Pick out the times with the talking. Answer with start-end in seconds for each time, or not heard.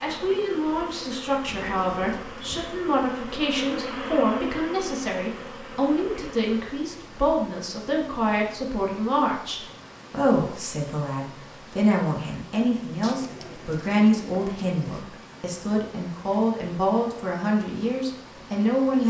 0.0-19.0.